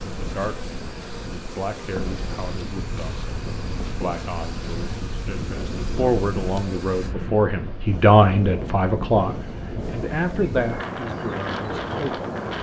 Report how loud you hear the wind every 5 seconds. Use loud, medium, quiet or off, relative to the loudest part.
medium, loud, loud.